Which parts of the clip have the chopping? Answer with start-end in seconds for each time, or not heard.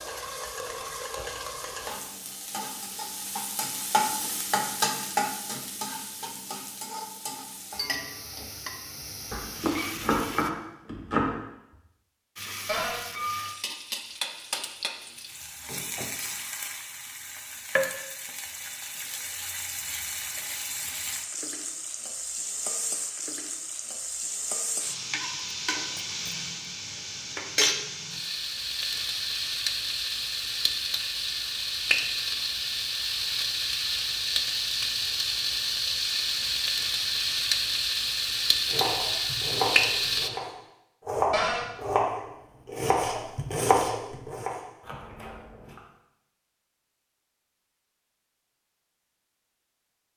9.3-11.3, 38.6-45.8.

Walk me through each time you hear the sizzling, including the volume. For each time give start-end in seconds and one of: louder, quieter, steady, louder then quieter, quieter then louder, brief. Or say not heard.
0.0-10.5 louder then quieter
12.3-40.3 louder.